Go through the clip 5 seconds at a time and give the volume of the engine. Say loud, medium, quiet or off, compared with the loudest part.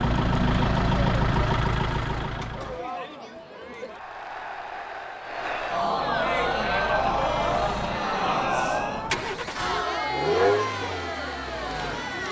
loud, medium, loud.